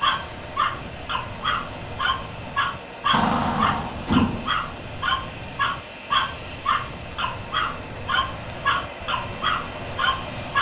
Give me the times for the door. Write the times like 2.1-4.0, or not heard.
3.1-4.5.